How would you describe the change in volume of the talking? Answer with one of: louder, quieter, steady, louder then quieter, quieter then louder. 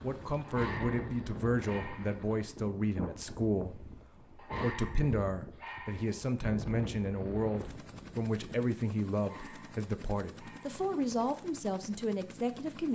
steady.